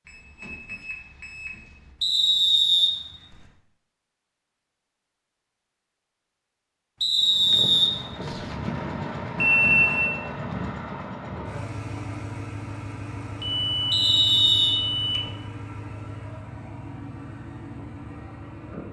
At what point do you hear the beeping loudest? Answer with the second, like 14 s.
10 s.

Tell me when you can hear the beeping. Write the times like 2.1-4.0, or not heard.
0.1-1.9, 9.3-10.2, 13.4-15.3.